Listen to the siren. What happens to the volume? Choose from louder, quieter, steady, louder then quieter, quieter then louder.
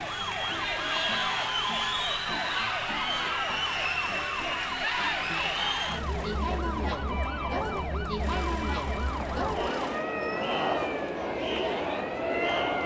steady.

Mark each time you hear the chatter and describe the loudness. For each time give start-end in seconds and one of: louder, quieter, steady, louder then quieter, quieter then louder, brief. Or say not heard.
0.0-12.8 steady.